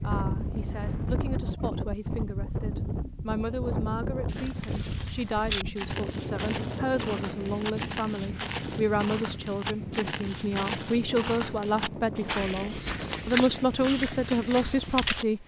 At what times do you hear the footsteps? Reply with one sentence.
The footsteps can be heard from 4.2 to 15.2 s.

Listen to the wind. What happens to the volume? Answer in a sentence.
The loudness of the wind goes down.